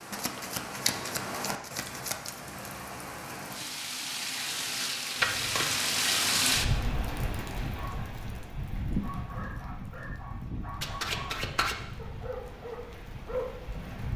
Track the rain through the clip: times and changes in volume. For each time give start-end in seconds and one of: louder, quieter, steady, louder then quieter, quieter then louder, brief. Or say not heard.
0.0-14.1 louder then quieter.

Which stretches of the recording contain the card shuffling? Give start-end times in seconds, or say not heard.
0.1-2.4, 5.2-5.8, 10.8-11.8.